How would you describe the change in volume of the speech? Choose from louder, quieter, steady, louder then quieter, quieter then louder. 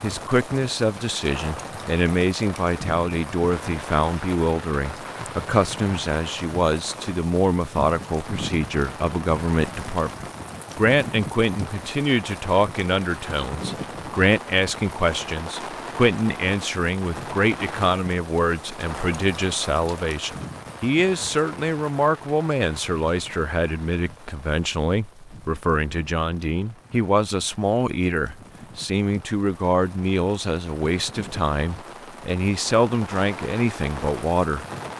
steady.